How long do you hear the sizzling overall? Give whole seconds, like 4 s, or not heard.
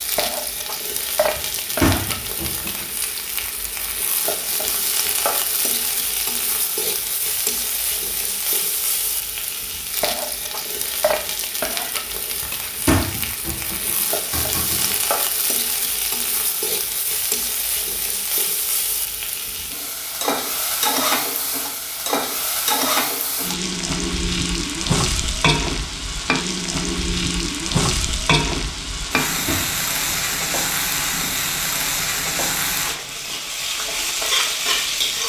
35 s.